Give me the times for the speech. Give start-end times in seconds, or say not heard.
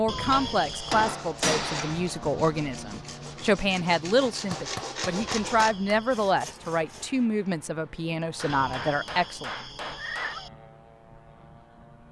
0.0-9.6.